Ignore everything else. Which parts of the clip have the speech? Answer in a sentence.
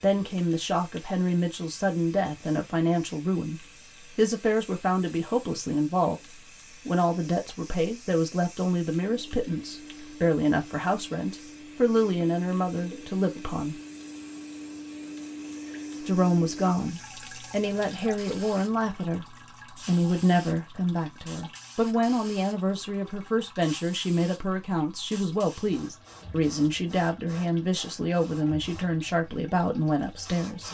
You can hear the speech from 0.0 to 13.8 s and from 16.0 to 30.6 s.